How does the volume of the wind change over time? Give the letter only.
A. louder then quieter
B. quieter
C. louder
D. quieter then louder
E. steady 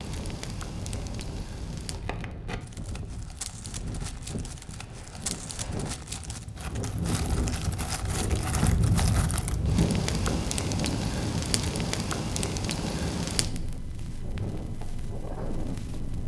A.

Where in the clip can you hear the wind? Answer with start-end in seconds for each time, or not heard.
0.0-16.2.